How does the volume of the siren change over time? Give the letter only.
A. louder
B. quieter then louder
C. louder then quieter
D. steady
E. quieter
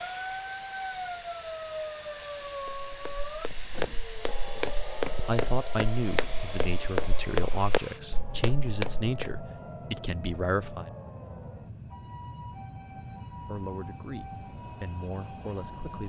E.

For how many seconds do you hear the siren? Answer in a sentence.
You can hear the siren for 16 seconds altogether.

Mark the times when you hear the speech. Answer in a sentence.
You can hear the speech from 4.5 to 10.9 s and from 13.4 to 16.0 s.